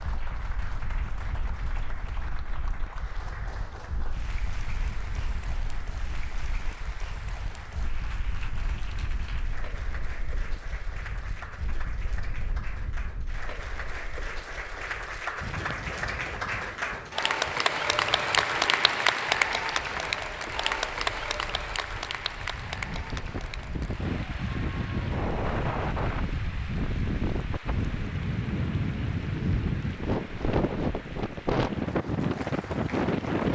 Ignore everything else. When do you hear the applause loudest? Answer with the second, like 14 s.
19 s.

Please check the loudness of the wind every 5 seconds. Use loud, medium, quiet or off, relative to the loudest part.
quiet, quiet, quiet, quiet, medium, loud, loud.